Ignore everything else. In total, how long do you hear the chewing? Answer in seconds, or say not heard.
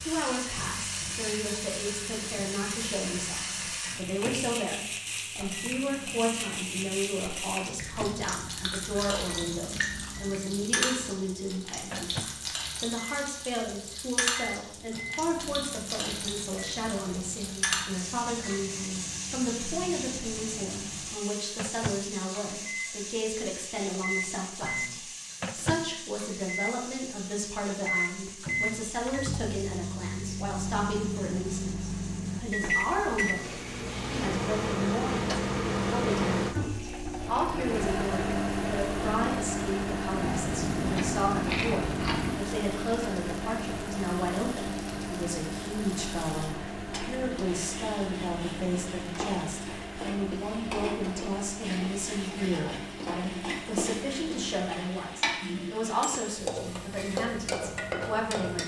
5 s.